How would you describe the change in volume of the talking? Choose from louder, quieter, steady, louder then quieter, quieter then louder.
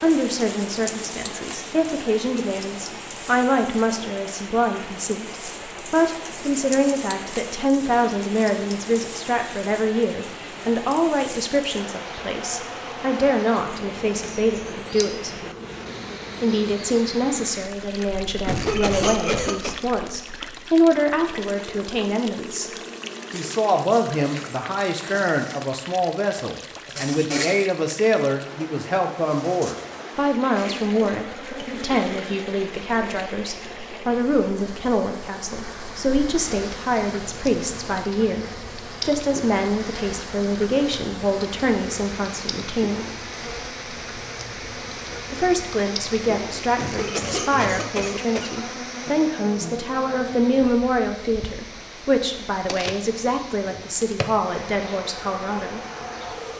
steady.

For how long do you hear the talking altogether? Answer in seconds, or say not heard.
52 s.